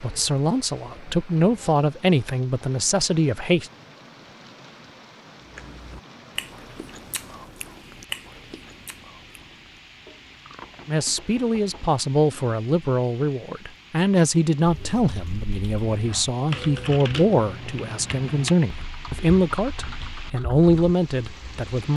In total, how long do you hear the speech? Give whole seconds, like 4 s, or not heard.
15 s.